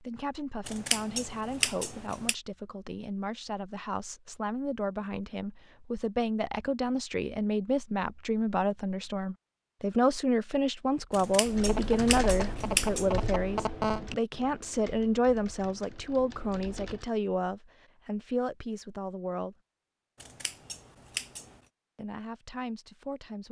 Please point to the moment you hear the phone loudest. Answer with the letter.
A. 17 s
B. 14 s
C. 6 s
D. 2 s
B.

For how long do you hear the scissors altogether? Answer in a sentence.
The scissors can be heard for 5 seconds in total.